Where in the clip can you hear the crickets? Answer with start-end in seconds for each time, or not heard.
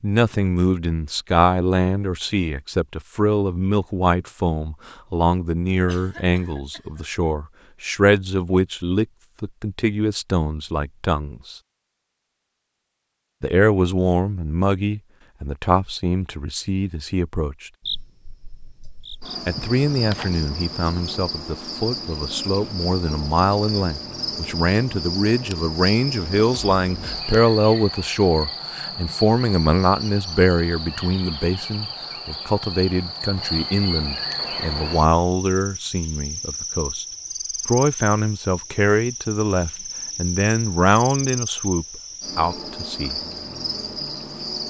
17.8-44.6.